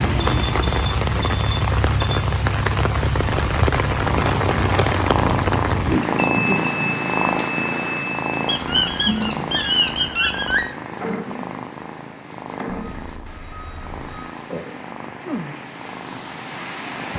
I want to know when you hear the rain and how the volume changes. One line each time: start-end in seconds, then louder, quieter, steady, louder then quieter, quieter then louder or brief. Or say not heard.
0.0-17.1 quieter.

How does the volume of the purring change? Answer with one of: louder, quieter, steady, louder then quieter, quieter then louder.
quieter.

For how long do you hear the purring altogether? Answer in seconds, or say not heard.
13 s.